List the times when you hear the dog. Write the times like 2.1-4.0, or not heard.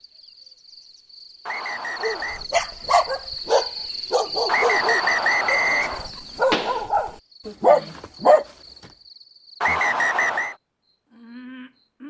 2.0-8.4.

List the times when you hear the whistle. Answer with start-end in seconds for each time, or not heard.
1.4-2.5, 4.5-6.1, 9.6-10.6.